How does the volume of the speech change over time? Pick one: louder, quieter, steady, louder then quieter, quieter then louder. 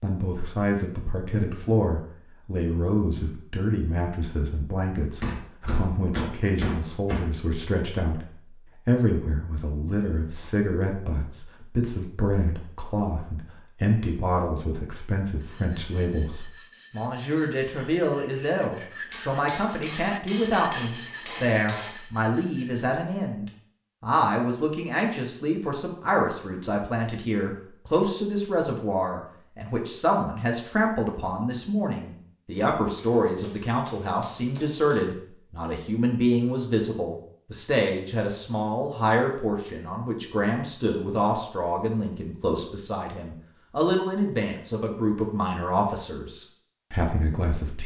steady.